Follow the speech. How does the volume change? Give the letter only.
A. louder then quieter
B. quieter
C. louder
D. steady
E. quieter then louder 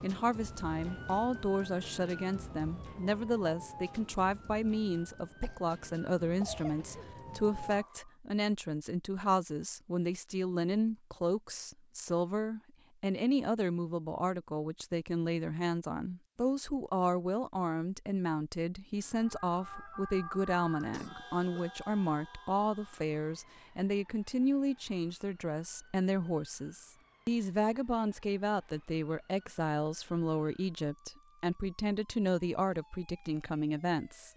D.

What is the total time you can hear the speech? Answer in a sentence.
The speech can be heard for 34 seconds in total.